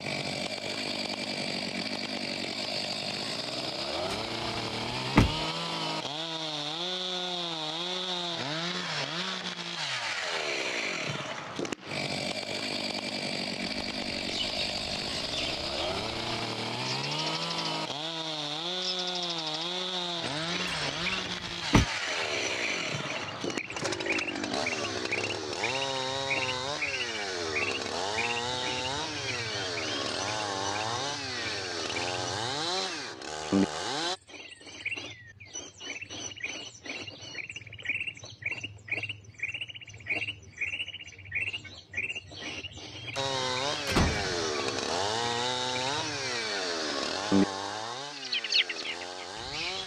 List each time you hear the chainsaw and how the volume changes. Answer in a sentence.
You can hear the chainsaw from 0.0 to 34.2 s, at a steady volume; and from 43.1 to 49.8 s, getting quieter.